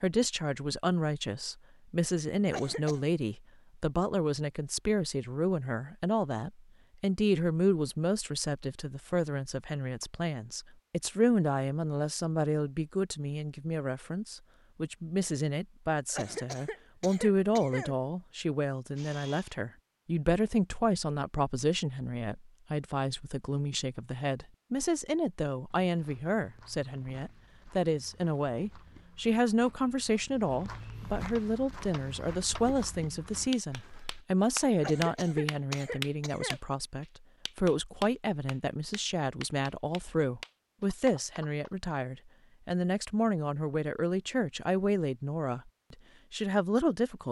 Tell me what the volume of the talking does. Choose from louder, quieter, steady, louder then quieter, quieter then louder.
steady.